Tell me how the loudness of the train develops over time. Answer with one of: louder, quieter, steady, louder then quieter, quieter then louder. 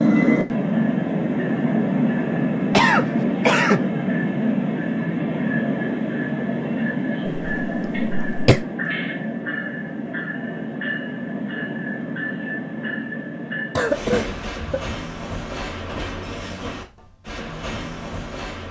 quieter.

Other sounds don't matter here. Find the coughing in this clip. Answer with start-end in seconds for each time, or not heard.
2.7-3.8, 7.2-8.7, 13.8-14.9.